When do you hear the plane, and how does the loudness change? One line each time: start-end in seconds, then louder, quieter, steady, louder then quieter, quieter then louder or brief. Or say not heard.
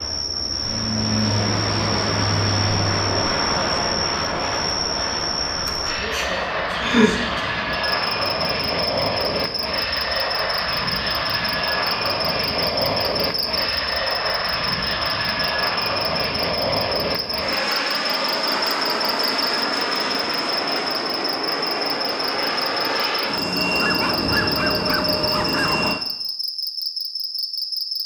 0.0-26.0 steady.